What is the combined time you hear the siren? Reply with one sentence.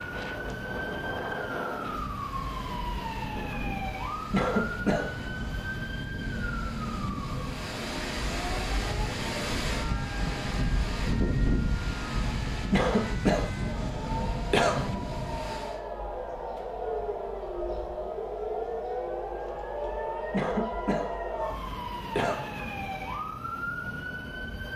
The siren can be heard for 25 seconds in total.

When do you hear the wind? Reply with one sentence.
You can hear the wind from 0.0 to 15.8 s.